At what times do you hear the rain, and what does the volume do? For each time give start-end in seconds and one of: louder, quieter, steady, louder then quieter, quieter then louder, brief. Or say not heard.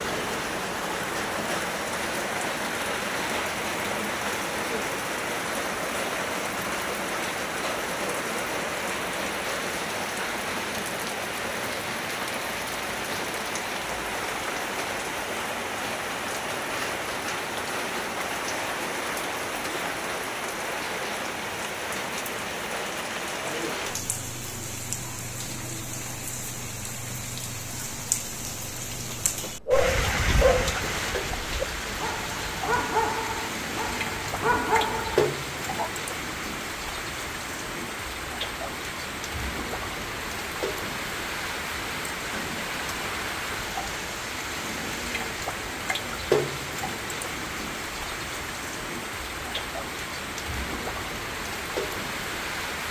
0.0-52.8 steady.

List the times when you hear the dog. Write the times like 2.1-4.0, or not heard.
29.1-35.9.